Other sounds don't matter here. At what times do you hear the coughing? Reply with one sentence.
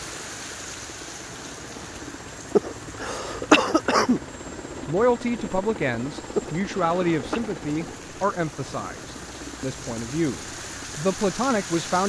You can hear the coughing from 2.5 to 4.2 s and from 6.3 to 7.4 s.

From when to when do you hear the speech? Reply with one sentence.
You can hear the speech from 4.8 to 12.0 s.